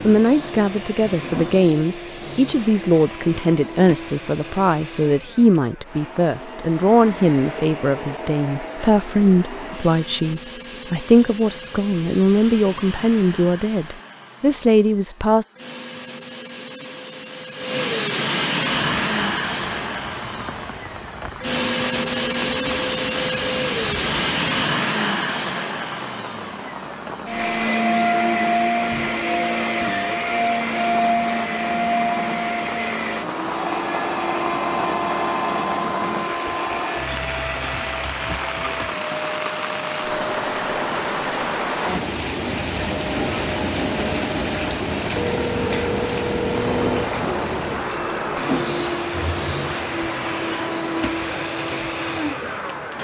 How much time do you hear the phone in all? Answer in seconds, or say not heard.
2 s.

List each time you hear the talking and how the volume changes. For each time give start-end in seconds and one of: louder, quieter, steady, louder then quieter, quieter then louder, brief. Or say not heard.
0.0-15.4 steady.